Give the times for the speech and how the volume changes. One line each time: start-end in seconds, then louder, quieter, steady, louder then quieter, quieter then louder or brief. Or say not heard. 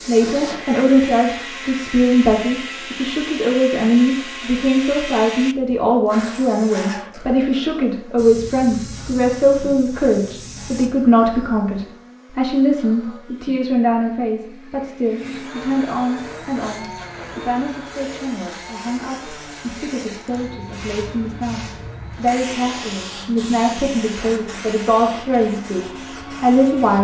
0.1-26.9 quieter then louder.